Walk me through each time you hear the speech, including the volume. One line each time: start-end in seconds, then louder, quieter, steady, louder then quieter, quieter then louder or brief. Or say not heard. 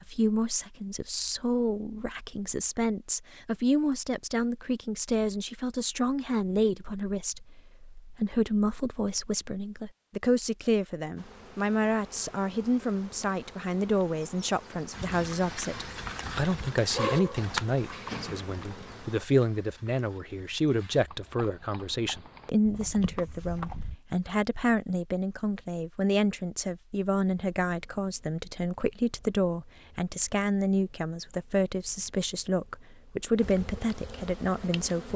0.1-35.1 steady.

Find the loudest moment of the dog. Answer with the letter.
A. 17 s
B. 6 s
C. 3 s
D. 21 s
A.